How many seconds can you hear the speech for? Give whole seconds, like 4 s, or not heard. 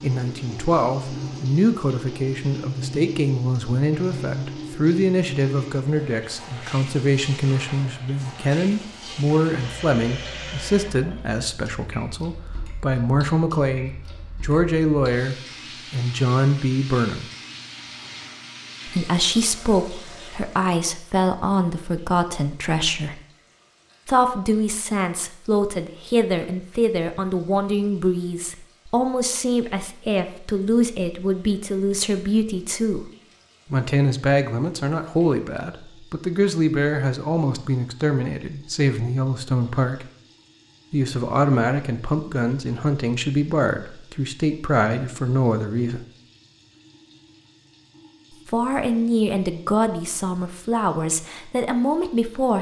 46 s.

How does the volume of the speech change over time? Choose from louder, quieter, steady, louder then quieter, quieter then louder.
steady.